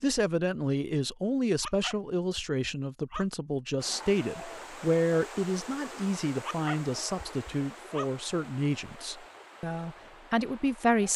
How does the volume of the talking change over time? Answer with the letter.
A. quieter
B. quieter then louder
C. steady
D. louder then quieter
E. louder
C.